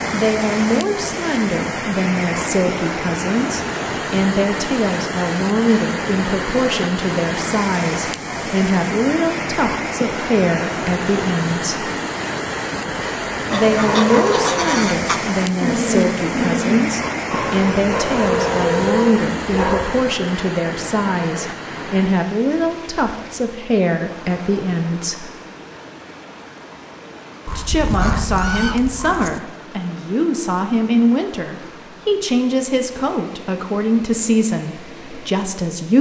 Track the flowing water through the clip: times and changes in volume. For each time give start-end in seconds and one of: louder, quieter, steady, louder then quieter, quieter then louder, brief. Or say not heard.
0.0-35.9 quieter.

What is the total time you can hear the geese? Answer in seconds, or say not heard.
4 s.